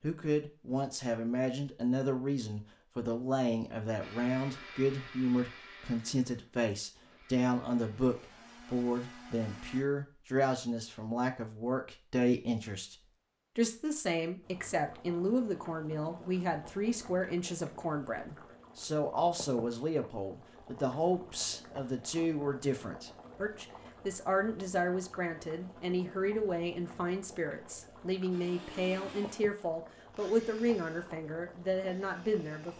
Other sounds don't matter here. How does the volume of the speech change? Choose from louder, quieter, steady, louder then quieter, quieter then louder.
steady.